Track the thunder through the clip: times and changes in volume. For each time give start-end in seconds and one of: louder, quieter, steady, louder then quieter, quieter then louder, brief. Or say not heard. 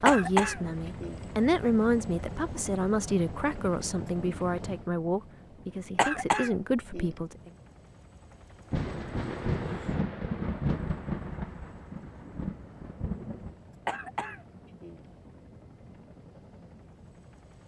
8.7-13.6 quieter then louder.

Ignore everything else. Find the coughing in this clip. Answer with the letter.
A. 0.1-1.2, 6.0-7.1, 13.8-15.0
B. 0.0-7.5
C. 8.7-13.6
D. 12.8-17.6
A.